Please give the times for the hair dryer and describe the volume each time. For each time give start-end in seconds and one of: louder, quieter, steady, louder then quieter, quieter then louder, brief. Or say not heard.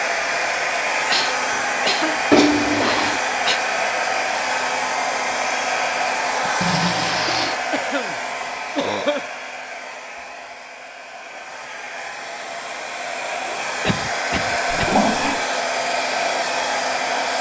0.0-17.3 quieter then louder.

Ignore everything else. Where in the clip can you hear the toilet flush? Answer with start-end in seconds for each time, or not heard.
2.3-3.2, 6.6-7.6, 14.7-15.4.